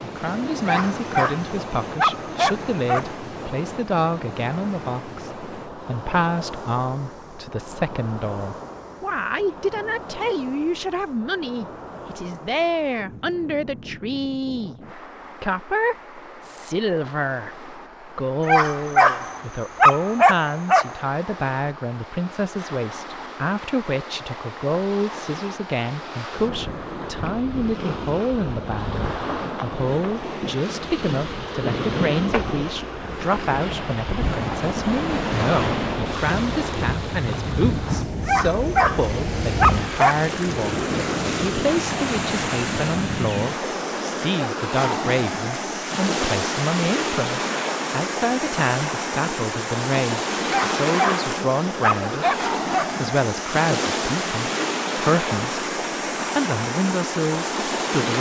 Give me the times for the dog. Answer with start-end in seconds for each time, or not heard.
0.7-3.1, 18.4-20.9, 38.2-40.3, 50.5-53.0.